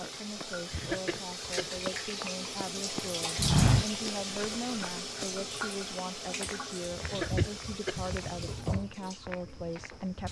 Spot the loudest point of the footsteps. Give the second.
4 s.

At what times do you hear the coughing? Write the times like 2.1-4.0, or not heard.
0.7-1.7, 7.0-8.0.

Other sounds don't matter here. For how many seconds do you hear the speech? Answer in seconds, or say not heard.
10 s.